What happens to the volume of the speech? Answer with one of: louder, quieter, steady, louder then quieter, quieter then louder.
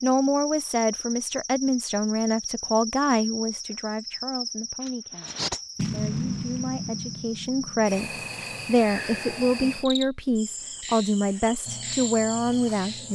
quieter then louder.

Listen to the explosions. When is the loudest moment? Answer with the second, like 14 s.
6 s.